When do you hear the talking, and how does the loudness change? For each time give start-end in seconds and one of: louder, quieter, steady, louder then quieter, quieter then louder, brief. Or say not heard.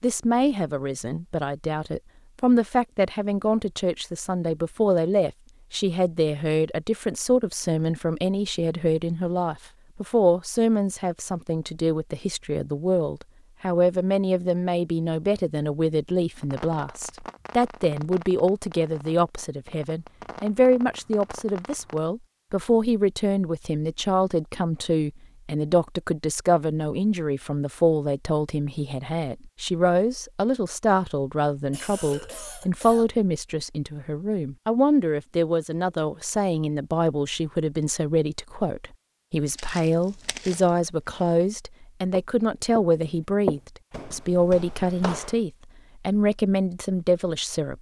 0.0-47.7 steady.